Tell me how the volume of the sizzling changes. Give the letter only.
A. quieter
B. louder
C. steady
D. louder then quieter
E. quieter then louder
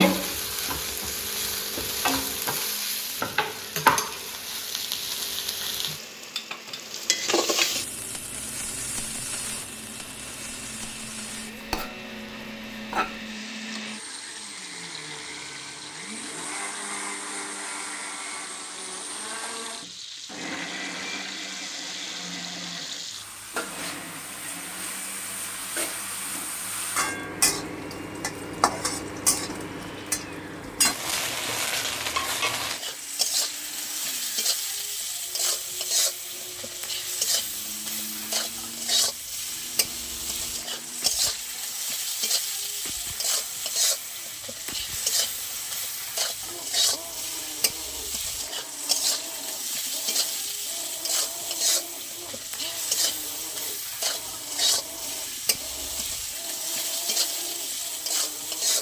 E.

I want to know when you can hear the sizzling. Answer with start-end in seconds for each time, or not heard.
0.0-58.7.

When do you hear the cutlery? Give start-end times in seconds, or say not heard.
not heard.